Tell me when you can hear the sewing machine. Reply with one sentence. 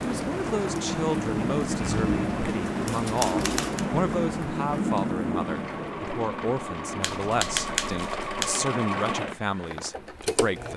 You can hear the sewing machine from 5.3 to 10.7 s.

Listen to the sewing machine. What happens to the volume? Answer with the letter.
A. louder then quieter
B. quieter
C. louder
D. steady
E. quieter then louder
A.